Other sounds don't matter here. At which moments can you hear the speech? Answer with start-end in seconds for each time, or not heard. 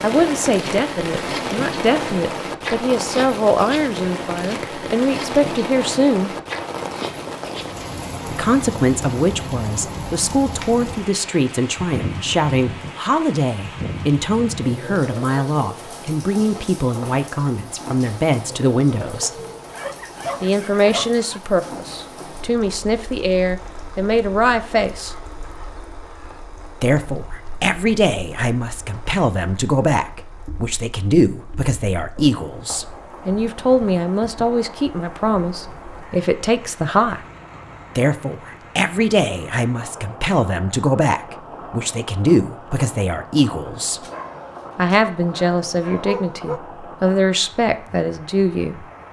0.0-6.3, 8.3-19.3, 20.4-25.1, 26.8-37.2, 38.0-44.0, 44.8-48.9.